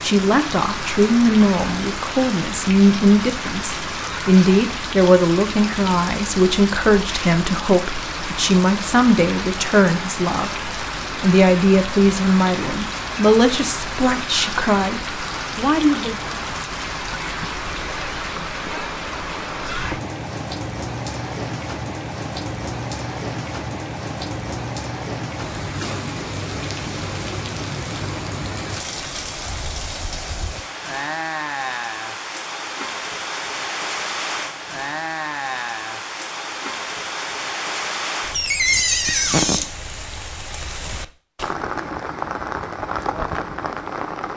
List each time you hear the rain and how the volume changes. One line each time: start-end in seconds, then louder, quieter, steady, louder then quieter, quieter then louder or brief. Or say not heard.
0.0-44.3 steady.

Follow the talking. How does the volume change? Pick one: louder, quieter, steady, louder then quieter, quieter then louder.
steady.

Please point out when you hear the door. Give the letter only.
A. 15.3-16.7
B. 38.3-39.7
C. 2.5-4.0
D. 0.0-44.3
B.